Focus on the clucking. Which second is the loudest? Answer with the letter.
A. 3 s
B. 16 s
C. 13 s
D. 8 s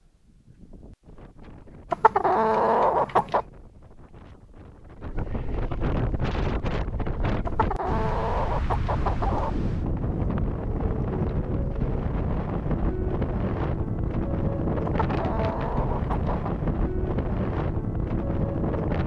A.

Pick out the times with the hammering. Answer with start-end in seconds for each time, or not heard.
not heard.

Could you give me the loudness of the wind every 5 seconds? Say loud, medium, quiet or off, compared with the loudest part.
quiet, loud, loud, loud.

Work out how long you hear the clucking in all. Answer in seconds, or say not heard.
5 s.